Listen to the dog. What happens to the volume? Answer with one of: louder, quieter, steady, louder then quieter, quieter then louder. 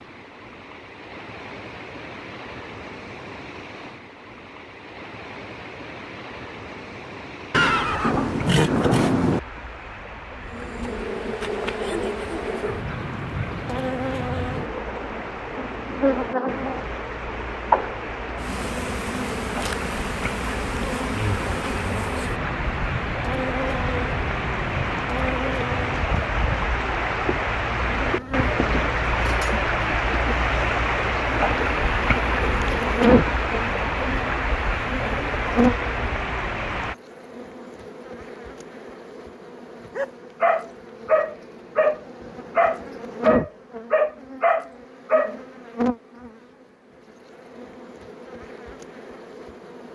steady.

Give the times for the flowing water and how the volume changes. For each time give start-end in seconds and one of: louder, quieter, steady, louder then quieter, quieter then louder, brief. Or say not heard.
0.0-37.0 louder.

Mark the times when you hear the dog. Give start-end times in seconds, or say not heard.
40.0-45.4.